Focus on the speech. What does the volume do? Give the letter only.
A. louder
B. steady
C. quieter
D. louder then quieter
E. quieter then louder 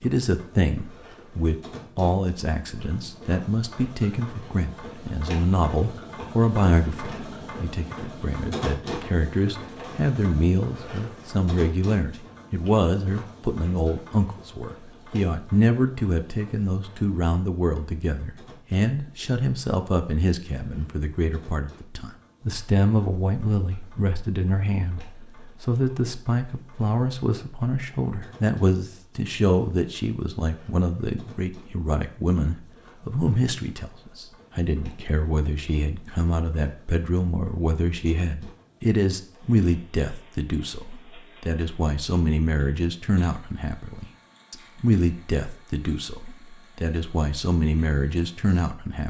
B.